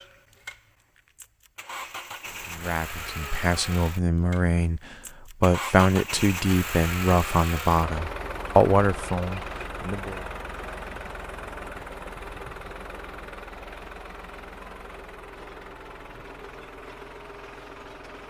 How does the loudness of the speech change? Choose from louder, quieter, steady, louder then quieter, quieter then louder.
louder.